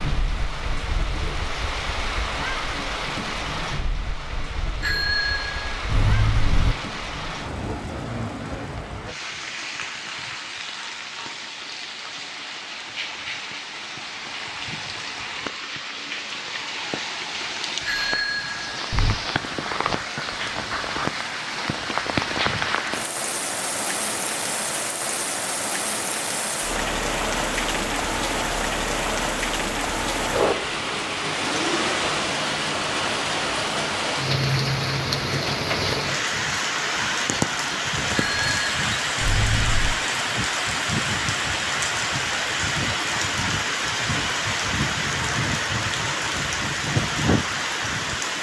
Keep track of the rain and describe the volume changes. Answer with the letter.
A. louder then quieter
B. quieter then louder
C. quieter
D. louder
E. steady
D.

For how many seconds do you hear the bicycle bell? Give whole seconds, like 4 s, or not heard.
5 s.